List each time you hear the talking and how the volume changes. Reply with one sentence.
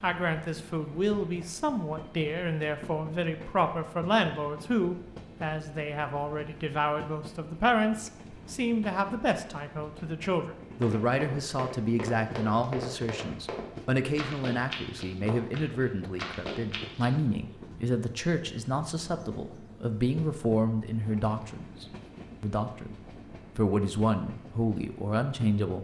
The talking can be heard from 0.0 to 25.7 s, at a steady volume.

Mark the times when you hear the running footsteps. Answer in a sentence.
The running footsteps can be heard from 10.8 to 17.2 s.